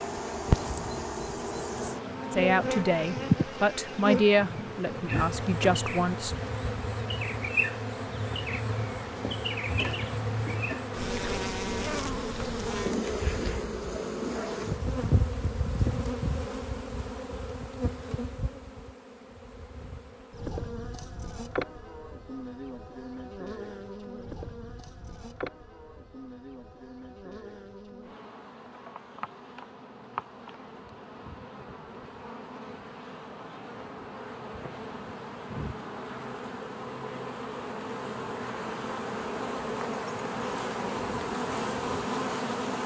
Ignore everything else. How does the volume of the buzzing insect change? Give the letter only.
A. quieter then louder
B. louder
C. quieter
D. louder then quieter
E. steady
A.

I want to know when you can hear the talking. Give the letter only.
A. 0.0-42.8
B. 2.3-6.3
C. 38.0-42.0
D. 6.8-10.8
B.